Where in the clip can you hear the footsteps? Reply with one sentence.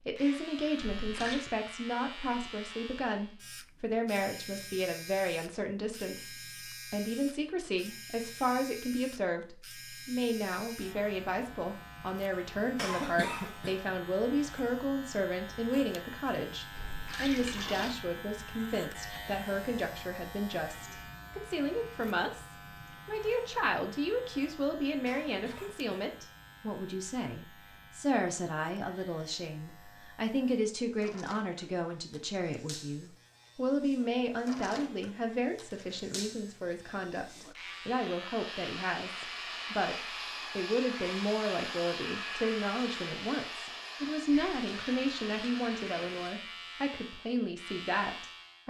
You can't hear the footsteps here.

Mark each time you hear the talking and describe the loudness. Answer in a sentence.
The talking can be heard from 0.1 to 48.6 s, at a steady volume.